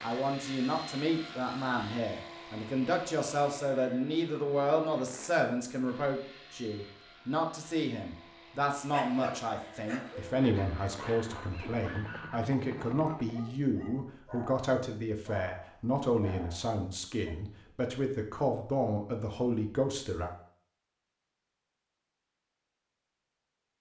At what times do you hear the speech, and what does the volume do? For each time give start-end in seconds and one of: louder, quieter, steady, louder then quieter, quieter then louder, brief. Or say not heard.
0.0-20.3 steady.